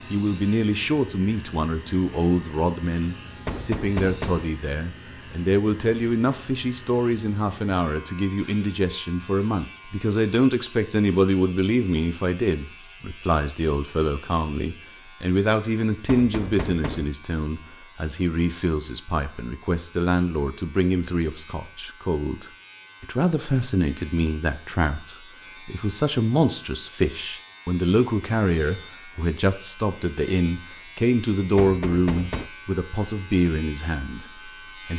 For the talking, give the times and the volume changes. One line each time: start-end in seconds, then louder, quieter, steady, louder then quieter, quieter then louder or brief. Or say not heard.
0.1-34.9 steady.